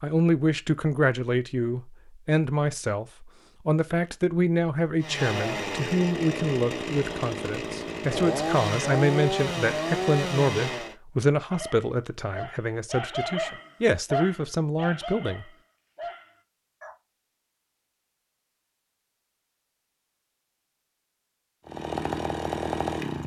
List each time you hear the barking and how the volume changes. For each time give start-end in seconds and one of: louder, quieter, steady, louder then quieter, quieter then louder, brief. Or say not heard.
11.5-16.9 louder then quieter.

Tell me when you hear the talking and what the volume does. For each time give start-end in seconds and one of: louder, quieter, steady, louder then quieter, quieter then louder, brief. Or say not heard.
0.0-15.4 steady.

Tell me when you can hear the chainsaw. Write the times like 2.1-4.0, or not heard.
5.0-10.9, 21.6-23.2.